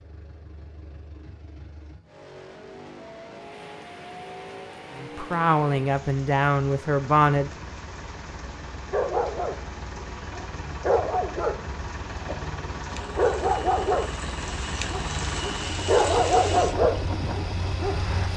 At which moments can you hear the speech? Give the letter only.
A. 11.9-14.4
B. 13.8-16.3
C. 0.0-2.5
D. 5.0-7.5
D.